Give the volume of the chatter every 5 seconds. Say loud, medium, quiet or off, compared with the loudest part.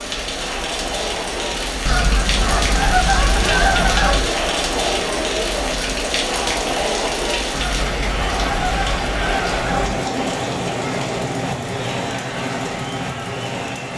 loud, loud, medium.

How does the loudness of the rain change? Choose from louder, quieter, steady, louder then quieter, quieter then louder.
steady.